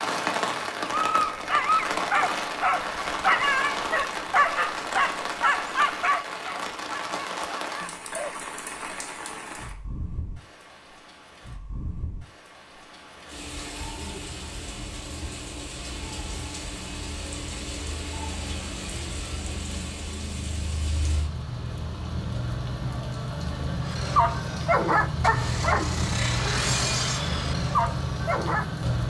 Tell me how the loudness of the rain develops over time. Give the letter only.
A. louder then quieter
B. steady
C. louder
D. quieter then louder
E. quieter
D.